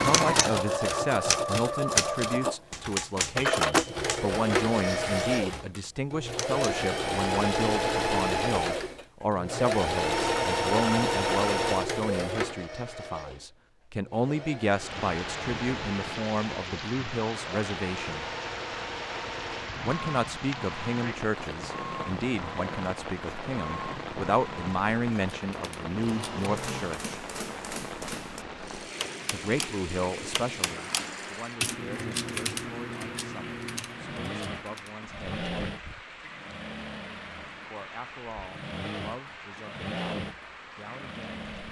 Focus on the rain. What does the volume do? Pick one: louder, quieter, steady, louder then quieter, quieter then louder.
quieter.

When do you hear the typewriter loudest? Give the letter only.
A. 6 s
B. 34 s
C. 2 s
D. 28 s
C.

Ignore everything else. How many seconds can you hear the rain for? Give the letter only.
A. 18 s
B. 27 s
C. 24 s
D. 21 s
B.